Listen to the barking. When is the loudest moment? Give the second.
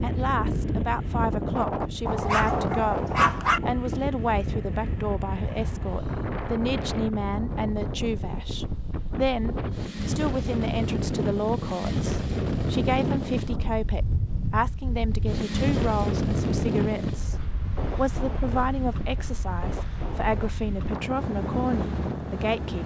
3 s.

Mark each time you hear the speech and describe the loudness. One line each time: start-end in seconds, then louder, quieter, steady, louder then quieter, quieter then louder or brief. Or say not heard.
0.0-22.8 steady.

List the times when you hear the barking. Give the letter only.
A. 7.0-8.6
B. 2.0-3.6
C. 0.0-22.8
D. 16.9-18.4
B.